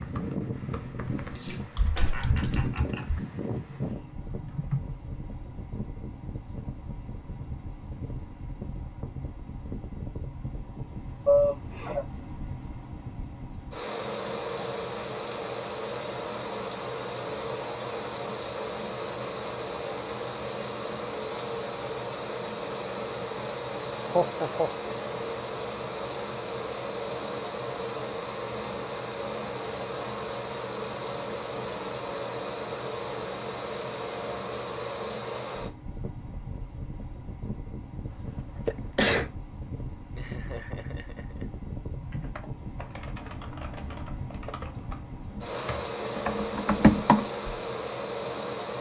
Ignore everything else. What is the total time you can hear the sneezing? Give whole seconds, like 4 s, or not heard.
2 s.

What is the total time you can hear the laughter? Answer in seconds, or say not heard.
4 s.